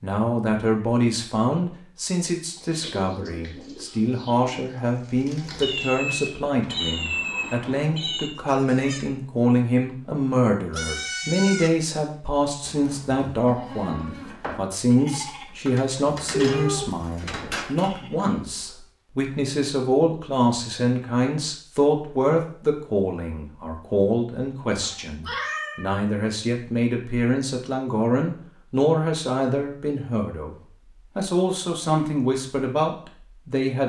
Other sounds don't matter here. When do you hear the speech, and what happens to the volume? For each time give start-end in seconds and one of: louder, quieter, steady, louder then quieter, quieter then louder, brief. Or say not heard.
0.0-30.6 steady
31.1-33.8 brief.